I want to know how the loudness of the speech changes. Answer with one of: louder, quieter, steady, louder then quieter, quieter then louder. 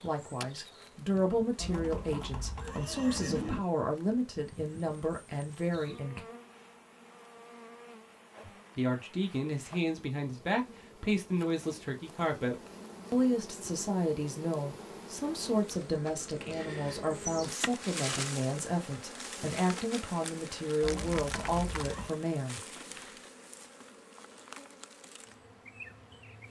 steady.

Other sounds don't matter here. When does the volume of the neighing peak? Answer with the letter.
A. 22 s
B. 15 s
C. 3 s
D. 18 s
C.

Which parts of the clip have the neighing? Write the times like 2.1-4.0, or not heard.
1.6-3.6, 20.8-22.1.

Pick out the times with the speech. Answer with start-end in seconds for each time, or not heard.
0.0-6.2, 8.4-22.6.